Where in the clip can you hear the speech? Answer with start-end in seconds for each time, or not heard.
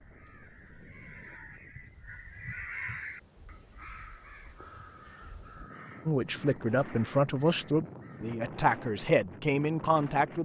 6.0-10.3.